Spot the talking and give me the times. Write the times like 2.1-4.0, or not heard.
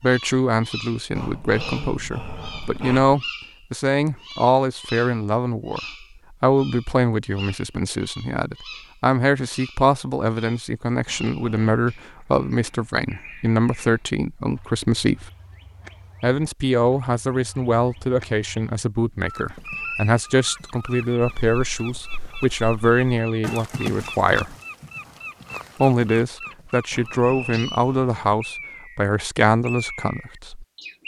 0.0-5.8, 6.4-15.3, 16.2-24.6, 25.8-30.6.